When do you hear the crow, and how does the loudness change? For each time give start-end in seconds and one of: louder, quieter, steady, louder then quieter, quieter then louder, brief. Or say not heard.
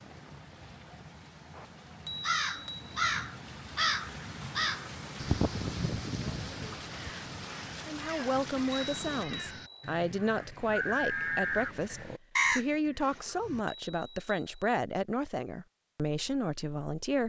2.2-13.6 quieter then louder.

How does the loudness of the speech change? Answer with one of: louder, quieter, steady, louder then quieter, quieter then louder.
steady.